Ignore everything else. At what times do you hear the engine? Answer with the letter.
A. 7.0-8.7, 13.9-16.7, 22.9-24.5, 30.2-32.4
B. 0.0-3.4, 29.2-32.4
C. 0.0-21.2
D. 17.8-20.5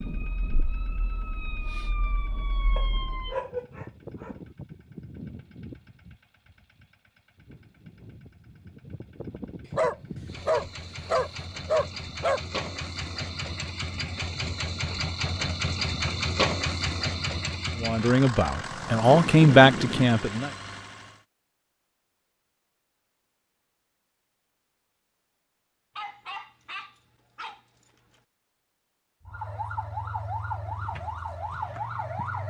C.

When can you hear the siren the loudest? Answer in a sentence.
The loudest moment of the siren is at 32 seconds.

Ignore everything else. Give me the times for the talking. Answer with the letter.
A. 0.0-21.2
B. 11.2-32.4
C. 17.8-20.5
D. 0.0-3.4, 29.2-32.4
C.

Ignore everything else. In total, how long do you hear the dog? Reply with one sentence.
You can hear the dog for 8 seconds altogether.